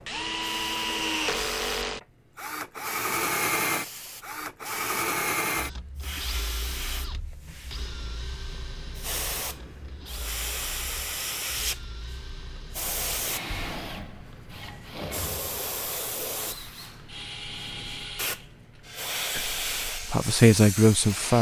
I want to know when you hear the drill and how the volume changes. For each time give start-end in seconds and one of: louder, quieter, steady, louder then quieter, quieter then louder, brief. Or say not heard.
0.0-21.3 quieter then louder.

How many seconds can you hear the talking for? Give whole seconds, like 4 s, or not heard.
2 s.